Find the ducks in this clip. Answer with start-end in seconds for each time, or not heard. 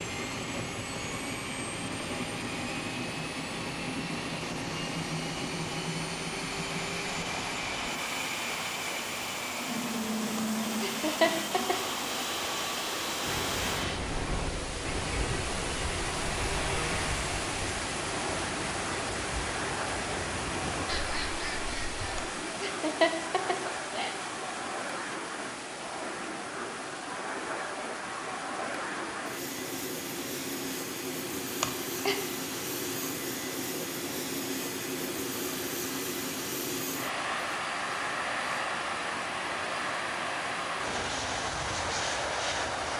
13.2-22.2.